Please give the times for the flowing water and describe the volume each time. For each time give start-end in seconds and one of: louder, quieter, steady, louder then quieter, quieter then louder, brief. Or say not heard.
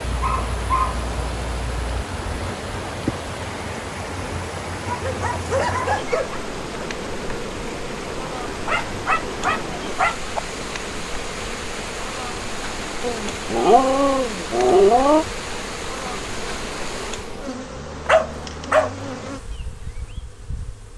0.0-17.4 steady.